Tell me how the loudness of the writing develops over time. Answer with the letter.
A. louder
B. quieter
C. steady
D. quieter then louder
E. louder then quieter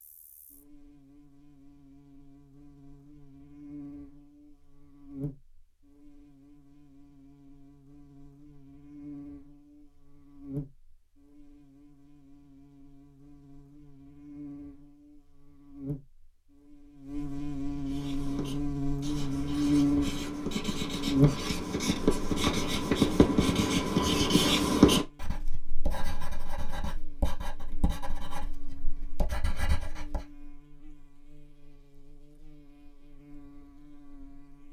E.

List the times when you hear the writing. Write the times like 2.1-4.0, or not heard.
17.8-30.2.